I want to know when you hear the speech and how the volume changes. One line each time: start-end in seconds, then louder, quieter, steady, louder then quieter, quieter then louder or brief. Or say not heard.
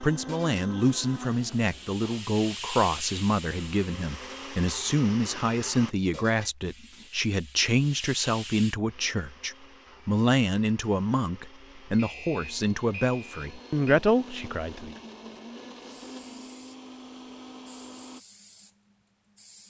0.0-14.9 steady.